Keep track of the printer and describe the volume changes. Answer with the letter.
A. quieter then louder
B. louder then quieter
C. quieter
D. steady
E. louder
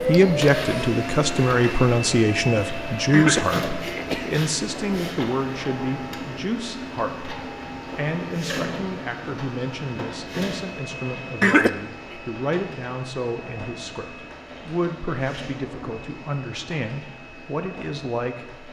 C.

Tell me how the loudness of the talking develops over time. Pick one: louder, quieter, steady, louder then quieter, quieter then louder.
quieter.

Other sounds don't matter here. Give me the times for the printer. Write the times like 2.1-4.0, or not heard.
0.0-18.6.